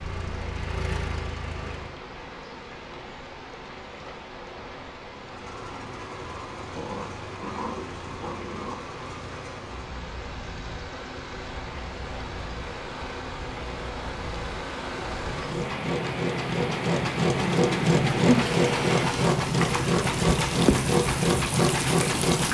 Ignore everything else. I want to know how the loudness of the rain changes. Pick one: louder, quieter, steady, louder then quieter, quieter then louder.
louder.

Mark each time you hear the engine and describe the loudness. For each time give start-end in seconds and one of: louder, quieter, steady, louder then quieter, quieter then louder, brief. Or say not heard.
0.0-1.9 brief
5.2-22.4 louder.